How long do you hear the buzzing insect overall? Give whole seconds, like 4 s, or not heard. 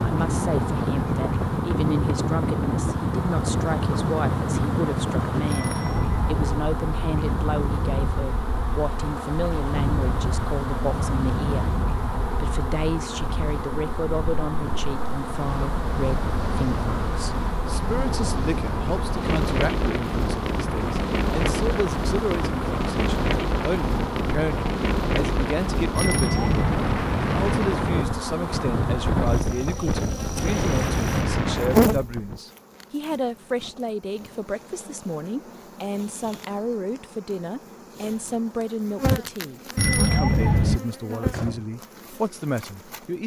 43 s.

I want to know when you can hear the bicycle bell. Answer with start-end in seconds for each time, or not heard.
5.5-6.5, 25.9-26.9, 39.8-40.8.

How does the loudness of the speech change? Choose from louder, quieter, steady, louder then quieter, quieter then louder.
steady.